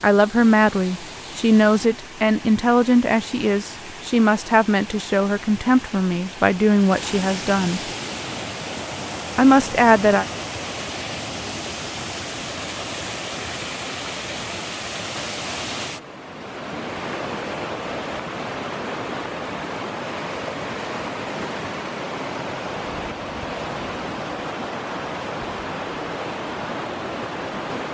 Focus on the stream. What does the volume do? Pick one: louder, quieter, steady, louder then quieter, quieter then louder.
louder.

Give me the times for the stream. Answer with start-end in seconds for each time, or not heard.
0.0-27.8.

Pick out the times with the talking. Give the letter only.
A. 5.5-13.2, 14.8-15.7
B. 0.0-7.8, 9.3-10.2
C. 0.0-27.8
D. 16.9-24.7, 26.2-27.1
B.